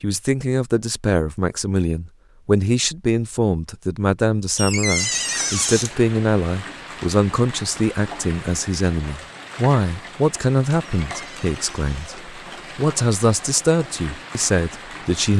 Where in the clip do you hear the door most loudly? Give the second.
5 s.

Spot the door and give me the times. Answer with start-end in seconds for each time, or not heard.
4.5-6.0, 11.0-12.1.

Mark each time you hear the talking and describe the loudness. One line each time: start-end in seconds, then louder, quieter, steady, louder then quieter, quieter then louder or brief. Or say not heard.
0.0-15.3 steady.